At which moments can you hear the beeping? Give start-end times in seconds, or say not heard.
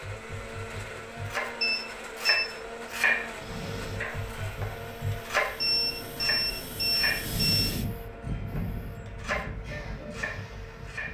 1.6-2.5, 5.6-7.7.